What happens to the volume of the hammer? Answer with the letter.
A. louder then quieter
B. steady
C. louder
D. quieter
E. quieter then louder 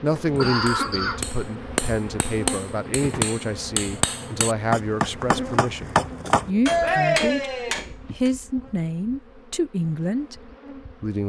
C.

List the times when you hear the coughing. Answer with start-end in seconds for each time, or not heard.
0.3-1.2.